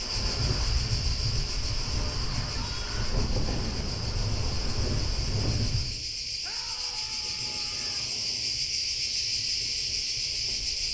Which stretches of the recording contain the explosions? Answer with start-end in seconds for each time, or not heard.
3.4-5.5.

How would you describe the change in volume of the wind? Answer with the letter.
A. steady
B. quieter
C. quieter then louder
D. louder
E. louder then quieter
B.